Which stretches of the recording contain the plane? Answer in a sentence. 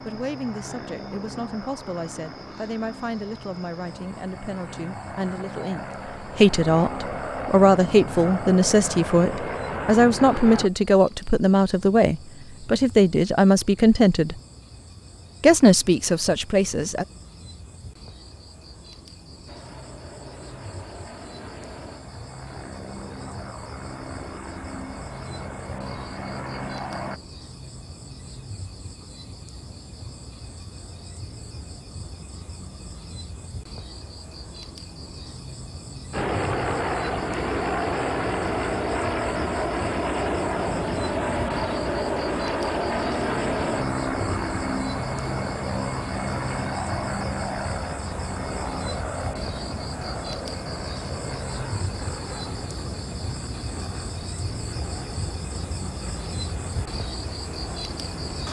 The plane can be heard from 0.0 to 10.7 s, from 19.4 to 27.2 s and from 36.1 to 58.4 s.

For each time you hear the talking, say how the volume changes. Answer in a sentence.
You can hear the talking from 0.0 to 14.4 s, getting louder; and briefly from 15.4 to 17.1 s.